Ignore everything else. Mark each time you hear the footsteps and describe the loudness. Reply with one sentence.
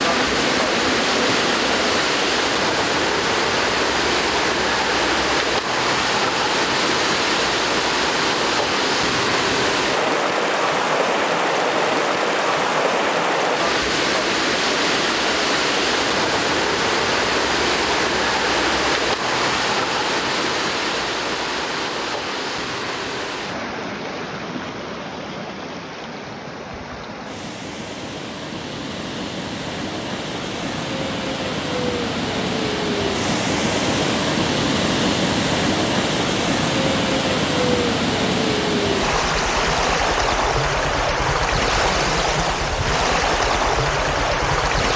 You can't hear the footsteps here.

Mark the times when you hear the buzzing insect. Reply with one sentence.
The buzzing insect can be heard from 0.0 to 2.0 s.